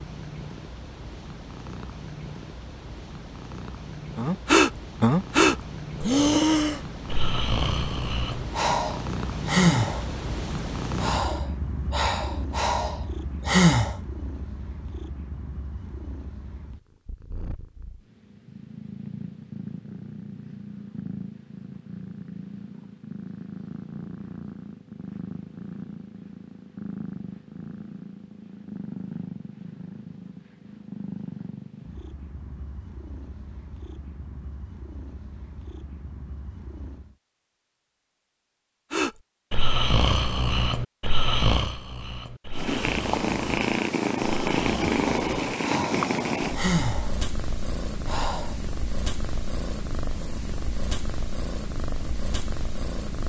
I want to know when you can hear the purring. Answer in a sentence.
You can hear the purring from 0.0 to 37.1 s and from 42.5 to 53.2 s.